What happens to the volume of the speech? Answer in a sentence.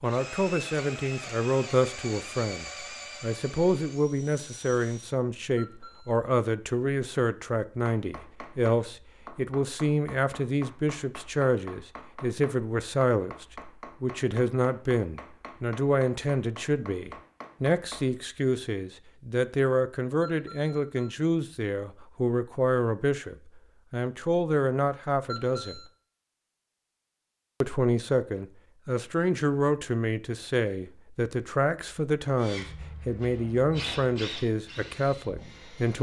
The loudness of the speech stays about the same.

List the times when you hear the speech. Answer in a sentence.
You can hear the speech from 0.0 to 25.8 s and from 27.6 to 35.9 s.